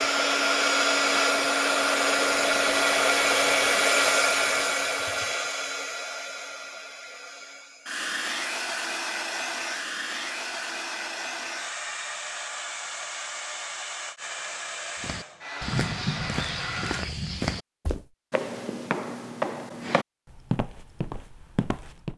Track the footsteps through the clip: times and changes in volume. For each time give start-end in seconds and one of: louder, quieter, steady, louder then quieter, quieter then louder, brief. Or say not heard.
15.0-22.1 steady.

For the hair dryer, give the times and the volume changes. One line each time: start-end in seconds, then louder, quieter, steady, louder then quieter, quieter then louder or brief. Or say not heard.
0.0-17.1 quieter.